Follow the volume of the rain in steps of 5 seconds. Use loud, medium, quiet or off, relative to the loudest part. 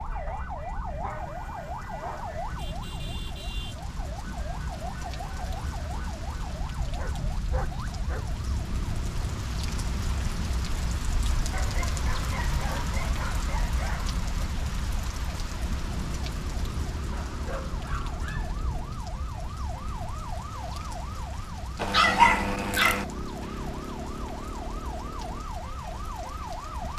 medium, loud, loud, loud, medium, medium.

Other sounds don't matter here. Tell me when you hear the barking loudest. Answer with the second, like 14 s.
22 s.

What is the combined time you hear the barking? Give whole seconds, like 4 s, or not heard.
9 s.